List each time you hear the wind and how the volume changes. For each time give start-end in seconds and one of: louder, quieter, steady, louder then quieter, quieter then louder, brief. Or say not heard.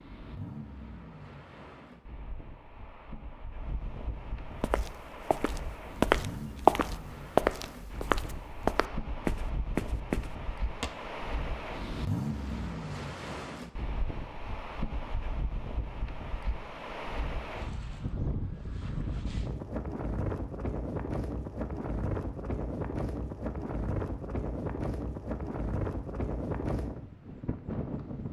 0.0-28.2 louder.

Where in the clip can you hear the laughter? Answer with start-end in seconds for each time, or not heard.
not heard.